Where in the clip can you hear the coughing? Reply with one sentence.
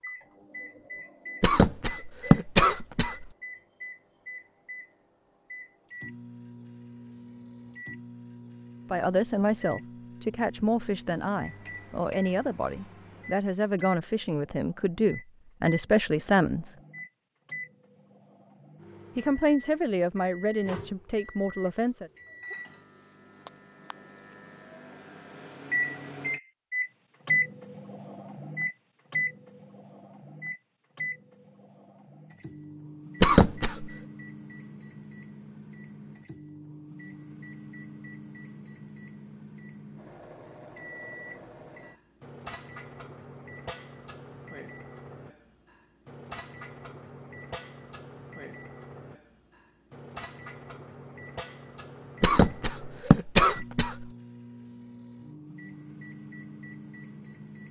The coughing can be heard from 1.4 to 3.2 s, from 33.2 to 33.9 s and from 52.2 to 54.0 s.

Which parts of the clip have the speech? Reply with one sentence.
You can hear the speech from 8.9 to 16.8 s and from 19.1 to 22.1 s.